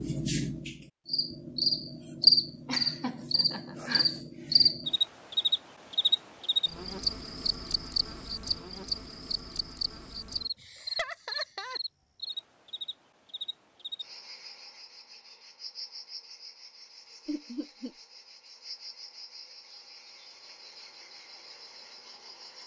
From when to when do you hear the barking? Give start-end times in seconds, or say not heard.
not heard.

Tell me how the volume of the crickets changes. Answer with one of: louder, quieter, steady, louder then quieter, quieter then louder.
quieter.